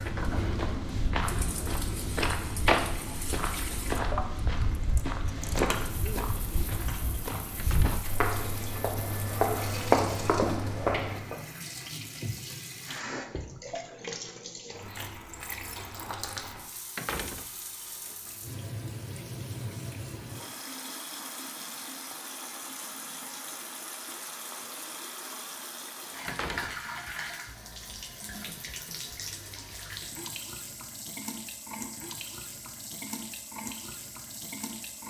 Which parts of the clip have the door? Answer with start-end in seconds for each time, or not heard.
7.5-8.1, 16.9-18.4, 26.2-26.8.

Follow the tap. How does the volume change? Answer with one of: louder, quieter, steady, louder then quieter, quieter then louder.
steady.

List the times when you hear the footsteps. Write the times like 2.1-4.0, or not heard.
0.0-11.4.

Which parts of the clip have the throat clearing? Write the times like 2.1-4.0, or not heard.
not heard.